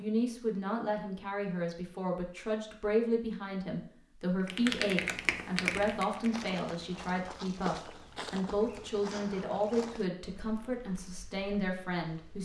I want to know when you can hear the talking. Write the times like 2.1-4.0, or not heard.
0.0-12.3.